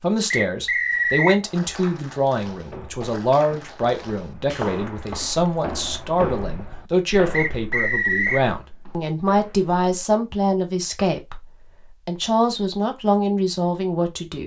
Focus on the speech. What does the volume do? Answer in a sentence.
The volume of the speech stays about the same.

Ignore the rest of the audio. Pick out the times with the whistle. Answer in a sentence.
You can hear the whistle from 0.3 to 1.4 s and from 7.3 to 8.4 s.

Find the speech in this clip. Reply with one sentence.
The speech can be heard from 0.0 to 14.4 s.